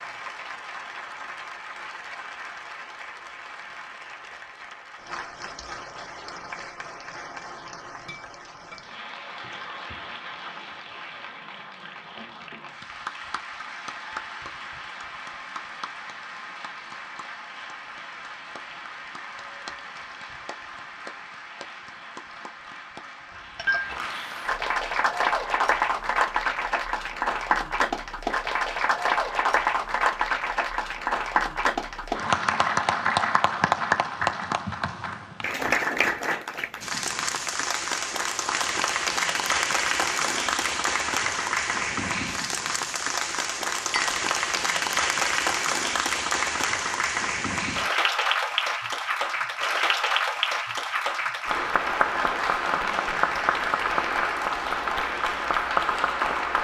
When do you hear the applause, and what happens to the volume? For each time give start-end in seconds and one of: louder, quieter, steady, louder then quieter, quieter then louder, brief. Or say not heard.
0.0-56.5 louder.